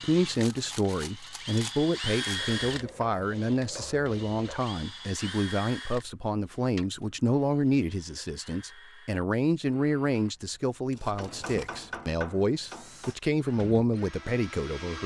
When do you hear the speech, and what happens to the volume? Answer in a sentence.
The speech can be heard from 0.0 to 15.0 s, at a steady volume.